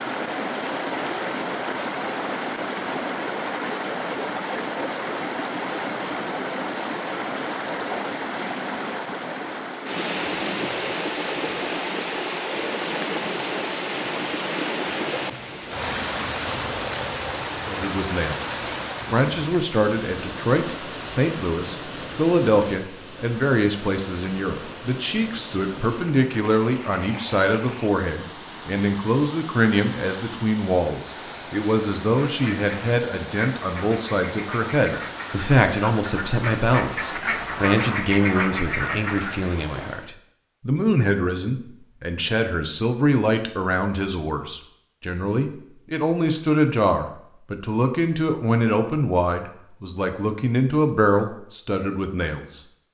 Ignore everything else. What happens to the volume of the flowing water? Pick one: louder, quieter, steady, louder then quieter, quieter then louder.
quieter.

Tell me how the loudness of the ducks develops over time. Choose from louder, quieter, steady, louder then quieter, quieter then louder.
louder.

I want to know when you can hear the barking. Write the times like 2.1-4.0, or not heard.
not heard.